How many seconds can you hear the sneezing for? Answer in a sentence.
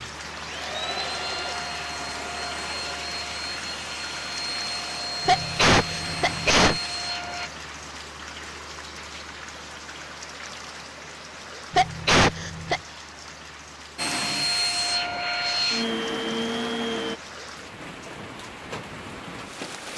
You can hear the sneezing for 3 seconds altogether.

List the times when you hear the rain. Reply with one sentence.
The rain can be heard from 0.0 to 19.9 s.